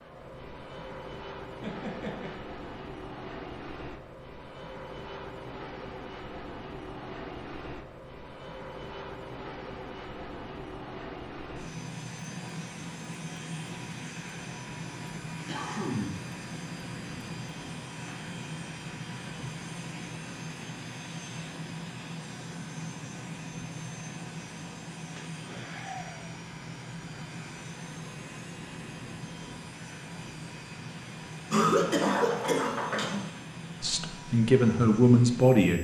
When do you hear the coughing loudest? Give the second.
32 s.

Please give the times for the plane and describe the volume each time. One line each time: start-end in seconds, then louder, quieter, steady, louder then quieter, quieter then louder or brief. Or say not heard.
0.0-35.8 steady.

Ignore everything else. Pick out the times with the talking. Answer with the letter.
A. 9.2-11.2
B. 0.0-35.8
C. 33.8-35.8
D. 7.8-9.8
C.